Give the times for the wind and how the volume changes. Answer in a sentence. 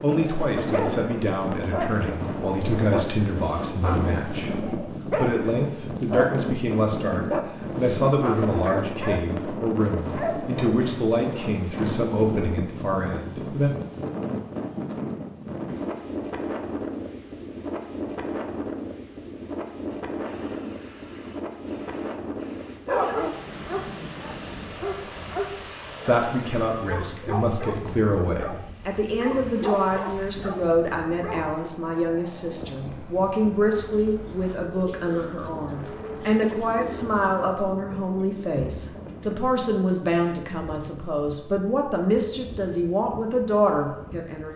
The wind can be heard from 0.0 to 44.5 s, getting quieter.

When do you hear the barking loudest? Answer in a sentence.
The volume of the barking peaks at 23 seconds.